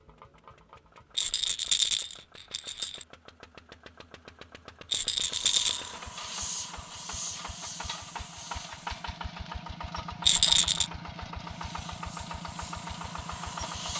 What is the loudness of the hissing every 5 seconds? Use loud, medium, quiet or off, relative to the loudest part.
off, loud, loud.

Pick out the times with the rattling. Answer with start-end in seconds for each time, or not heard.
1.1-3.0, 4.9-5.9, 10.2-10.9.